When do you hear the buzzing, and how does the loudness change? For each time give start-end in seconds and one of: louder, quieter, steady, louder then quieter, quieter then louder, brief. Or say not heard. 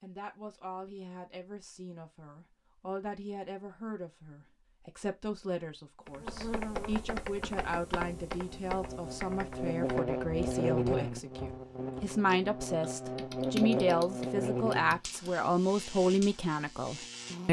6.2-17.4 louder then quieter.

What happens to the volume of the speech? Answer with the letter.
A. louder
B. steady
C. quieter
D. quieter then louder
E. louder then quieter
A.